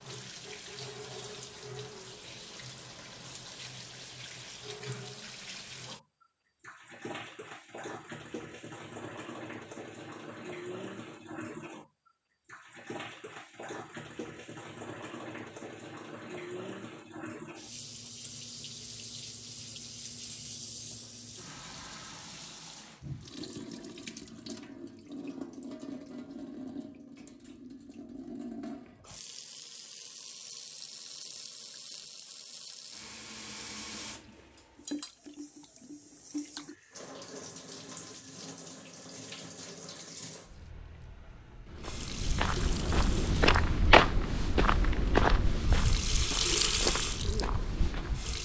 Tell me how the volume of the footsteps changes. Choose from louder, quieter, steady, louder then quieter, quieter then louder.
louder then quieter.